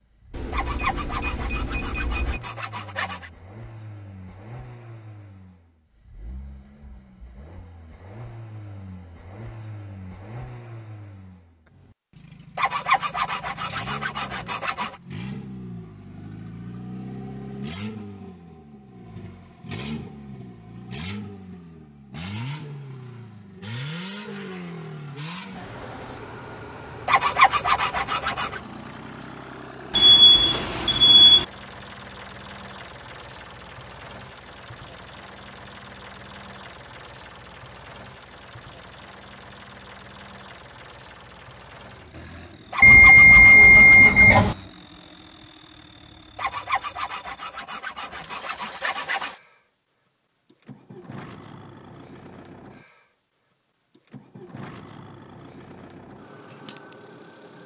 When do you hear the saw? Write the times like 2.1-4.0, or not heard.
0.5-3.3, 12.6-14.9, 27.1-28.6, 42.7-44.4, 46.4-49.4.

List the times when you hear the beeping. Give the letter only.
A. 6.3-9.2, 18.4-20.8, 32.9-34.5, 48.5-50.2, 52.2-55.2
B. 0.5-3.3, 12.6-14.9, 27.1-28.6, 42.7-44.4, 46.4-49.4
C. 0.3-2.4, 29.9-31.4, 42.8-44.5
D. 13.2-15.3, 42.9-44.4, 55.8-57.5
C.